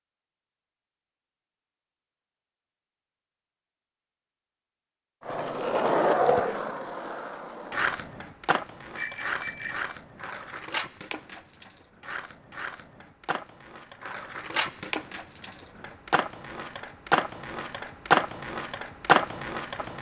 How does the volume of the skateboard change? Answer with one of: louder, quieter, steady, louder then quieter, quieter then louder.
quieter then louder.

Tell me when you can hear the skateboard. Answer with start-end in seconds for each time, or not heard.
5.2-19.9.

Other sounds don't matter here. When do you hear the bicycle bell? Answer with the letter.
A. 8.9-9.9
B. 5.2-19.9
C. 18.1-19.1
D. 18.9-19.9
A.